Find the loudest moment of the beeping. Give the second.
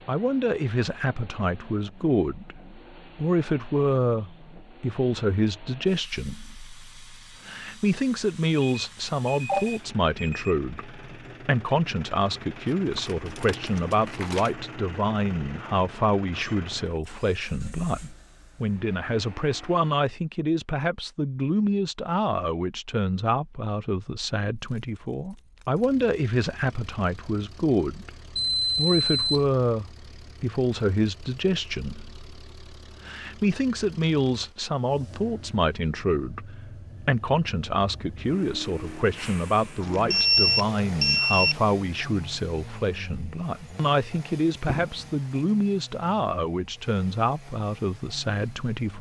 40 s.